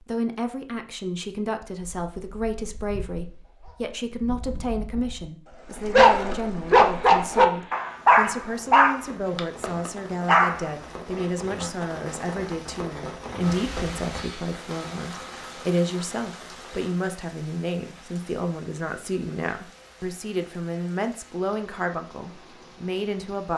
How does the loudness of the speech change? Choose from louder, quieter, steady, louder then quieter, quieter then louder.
steady.